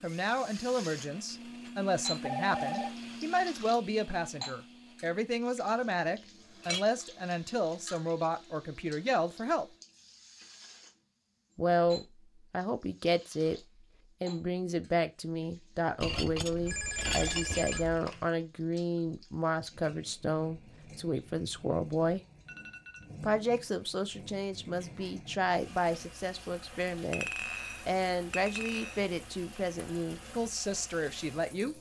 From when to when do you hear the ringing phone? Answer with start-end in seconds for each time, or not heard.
2.2-2.9, 16.6-18.3, 22.4-23.1.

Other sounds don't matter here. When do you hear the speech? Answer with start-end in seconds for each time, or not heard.
0.0-9.7, 11.6-13.6, 14.2-22.2, 23.2-31.7.